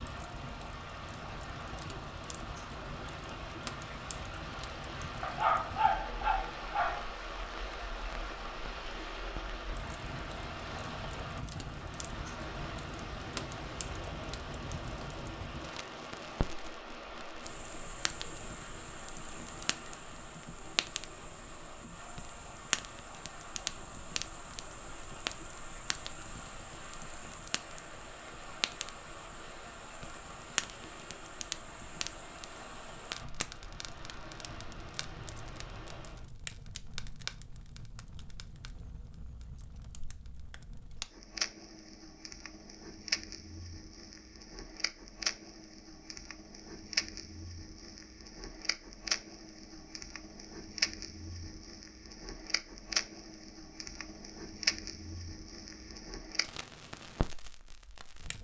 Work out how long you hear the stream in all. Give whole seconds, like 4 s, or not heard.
36 s.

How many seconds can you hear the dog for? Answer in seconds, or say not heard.
2 s.